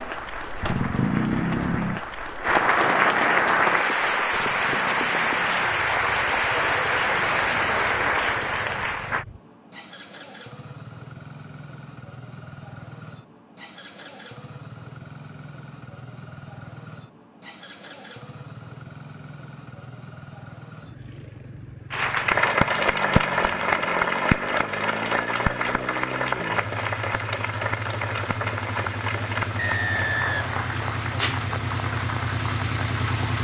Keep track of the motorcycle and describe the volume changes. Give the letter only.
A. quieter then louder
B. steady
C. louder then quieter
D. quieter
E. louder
A.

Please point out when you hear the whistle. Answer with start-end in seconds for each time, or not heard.
29.6-30.6.